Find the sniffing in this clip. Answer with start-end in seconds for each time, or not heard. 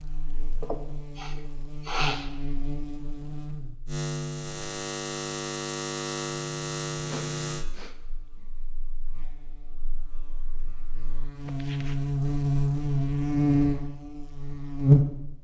0.6-2.3, 7.0-8.4, 11.4-11.9.